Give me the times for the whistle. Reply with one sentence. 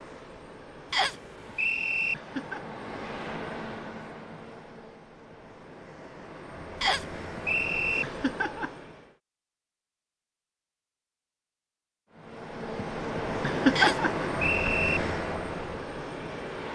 The whistle can be heard from 0.9 to 2.1 s, from 6.8 to 8.1 s and from 13.8 to 15.0 s.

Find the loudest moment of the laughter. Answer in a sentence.
The loudest moment of the laughter is at 14 seconds.